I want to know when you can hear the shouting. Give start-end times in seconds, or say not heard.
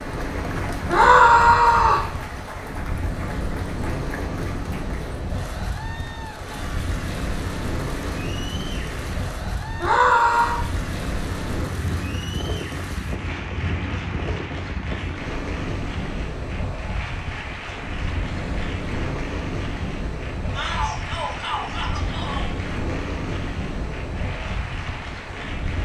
0.8-2.0, 9.8-10.6, 20.6-22.5.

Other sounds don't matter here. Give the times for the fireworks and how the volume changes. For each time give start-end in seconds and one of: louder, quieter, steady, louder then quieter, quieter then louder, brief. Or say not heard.
not heard.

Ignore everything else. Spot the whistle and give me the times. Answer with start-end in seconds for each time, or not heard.
not heard.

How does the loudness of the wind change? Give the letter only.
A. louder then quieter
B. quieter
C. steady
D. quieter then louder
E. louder
C.